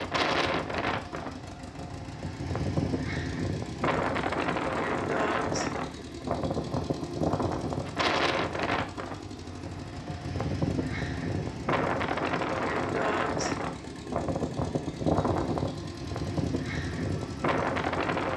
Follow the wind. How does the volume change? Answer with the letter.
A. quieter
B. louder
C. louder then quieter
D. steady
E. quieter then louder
D.